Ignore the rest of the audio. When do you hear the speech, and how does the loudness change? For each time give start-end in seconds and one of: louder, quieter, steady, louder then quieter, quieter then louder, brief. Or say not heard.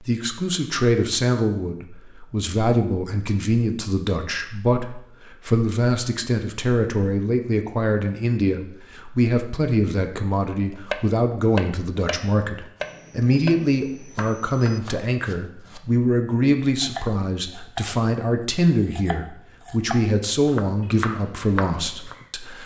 0.0-22.6 steady.